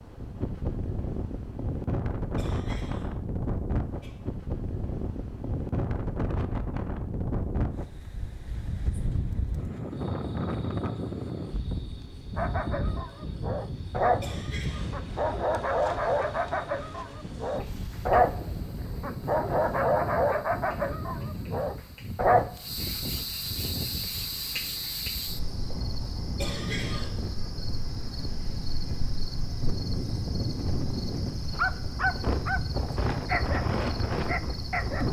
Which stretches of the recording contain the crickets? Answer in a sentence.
You can hear the crickets from 9.9 to 35.0 s.